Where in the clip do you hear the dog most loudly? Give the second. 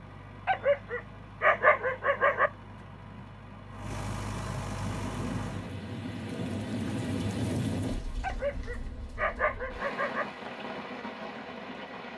2 s.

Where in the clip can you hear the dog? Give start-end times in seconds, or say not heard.
0.5-2.5, 8.2-10.2.